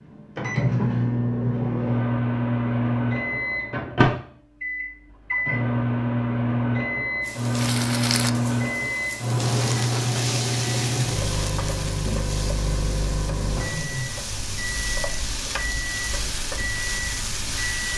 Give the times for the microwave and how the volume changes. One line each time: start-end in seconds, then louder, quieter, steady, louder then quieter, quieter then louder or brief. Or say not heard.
0.0-17.9 quieter.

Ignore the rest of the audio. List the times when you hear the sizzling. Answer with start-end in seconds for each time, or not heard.
7.2-17.9.